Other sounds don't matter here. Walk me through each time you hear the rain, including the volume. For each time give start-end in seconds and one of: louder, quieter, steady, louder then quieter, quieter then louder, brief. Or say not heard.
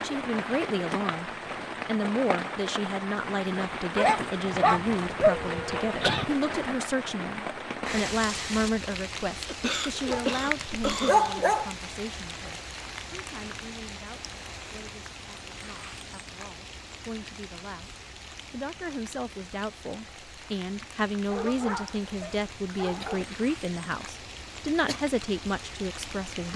0.0-26.5 quieter.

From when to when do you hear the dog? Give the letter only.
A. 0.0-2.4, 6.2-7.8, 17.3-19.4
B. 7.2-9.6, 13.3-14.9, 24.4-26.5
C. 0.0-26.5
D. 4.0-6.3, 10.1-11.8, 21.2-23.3
D.